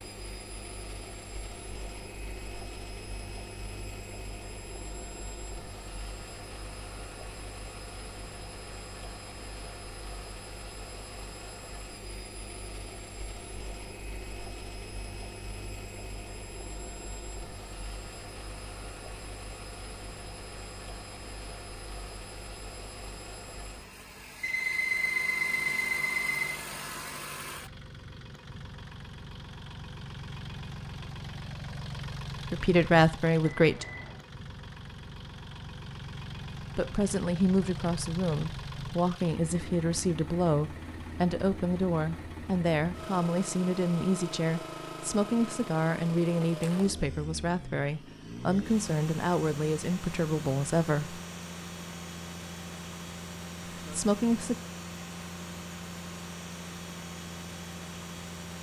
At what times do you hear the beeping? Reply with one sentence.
You can hear the beeping from 24.4 to 26.6 s and from 33.4 to 34.1 s.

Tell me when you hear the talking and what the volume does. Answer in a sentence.
You can hear the talking briefly from 32.5 to 33.9 s; from 36.8 to 51.2 s, at a steady volume; and briefly from 53.9 to 54.5 s.